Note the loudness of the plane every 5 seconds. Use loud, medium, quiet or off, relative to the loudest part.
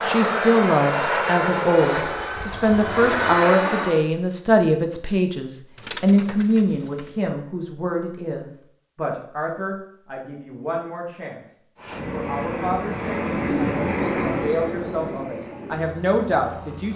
loud, off, loud, quiet.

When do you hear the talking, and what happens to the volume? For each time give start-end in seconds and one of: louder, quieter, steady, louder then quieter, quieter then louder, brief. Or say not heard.
0.0-16.9 quieter then louder.